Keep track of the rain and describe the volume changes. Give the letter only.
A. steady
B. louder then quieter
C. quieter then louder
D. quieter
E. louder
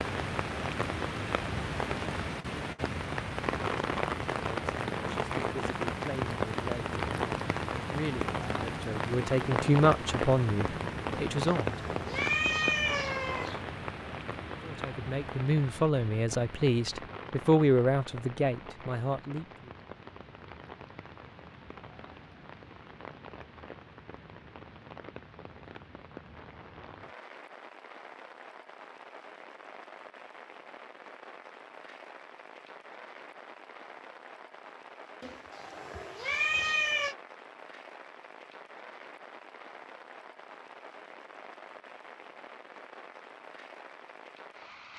D.